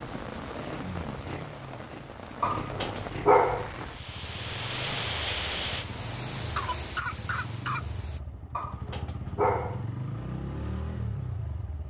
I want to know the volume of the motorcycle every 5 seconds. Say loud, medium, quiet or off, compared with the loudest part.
medium, medium, loud.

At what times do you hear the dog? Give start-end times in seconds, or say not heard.
2.4-3.7, 8.6-9.8.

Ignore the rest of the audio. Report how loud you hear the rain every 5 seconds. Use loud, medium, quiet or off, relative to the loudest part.
loud, loud, off.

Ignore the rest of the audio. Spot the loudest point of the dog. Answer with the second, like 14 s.
3 s.